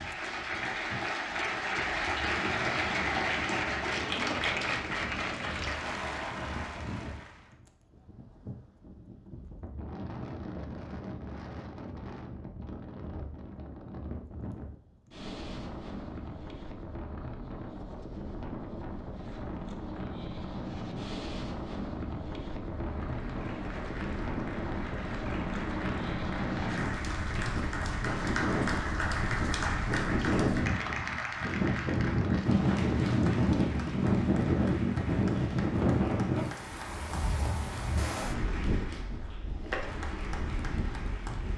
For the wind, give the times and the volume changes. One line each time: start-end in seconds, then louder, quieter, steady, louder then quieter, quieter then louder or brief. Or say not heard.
0.0-41.5 louder.